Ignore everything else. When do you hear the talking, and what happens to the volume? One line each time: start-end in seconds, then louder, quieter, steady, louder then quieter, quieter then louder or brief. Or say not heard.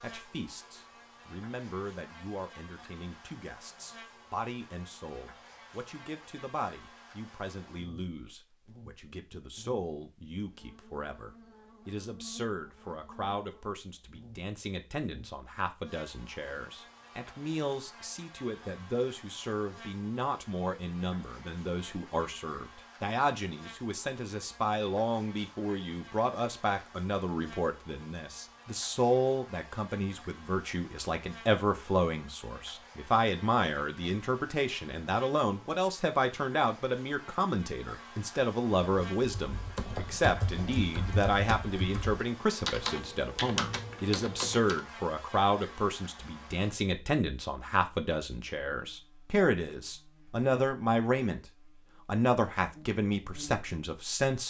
0.0-51.5 louder
52.0-54.4 brief.